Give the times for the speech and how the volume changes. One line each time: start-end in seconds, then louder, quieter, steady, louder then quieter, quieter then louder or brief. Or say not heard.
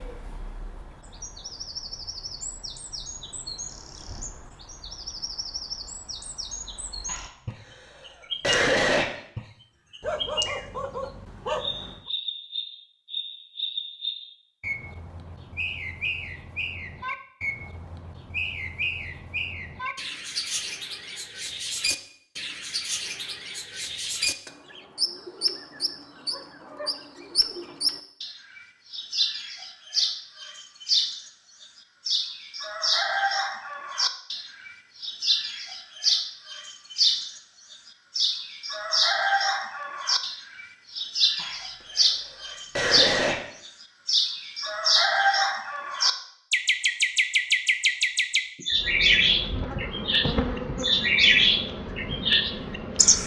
not heard.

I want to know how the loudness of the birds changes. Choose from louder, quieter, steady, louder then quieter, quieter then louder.
louder.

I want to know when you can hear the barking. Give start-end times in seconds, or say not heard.
10.0-12.1.